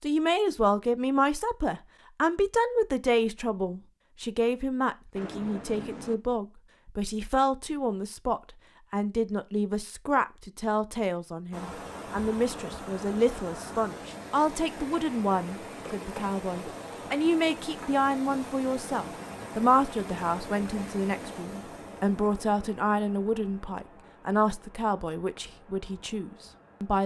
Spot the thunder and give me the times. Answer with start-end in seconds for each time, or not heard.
5.2-6.2.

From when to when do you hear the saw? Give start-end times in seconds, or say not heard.
not heard.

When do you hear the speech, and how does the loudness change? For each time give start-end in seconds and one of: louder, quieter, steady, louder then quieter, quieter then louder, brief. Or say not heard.
0.0-27.0 steady.